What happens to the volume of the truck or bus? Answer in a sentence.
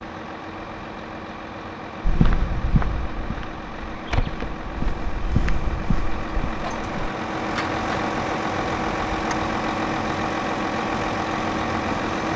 The volume of the truck or bus goes up.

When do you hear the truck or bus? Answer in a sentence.
You can hear the truck or bus from 0.0 to 12.3 s.